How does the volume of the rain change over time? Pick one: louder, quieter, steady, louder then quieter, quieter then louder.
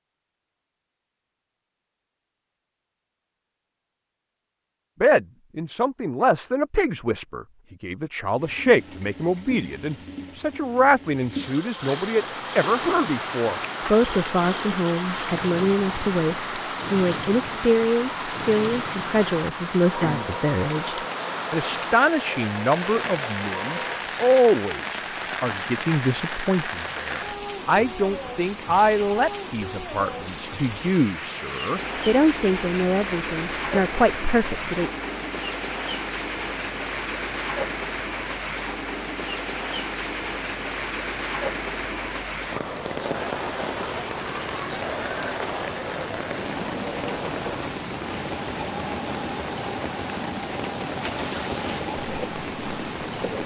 steady.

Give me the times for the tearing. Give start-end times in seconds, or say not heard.
51.0-51.8.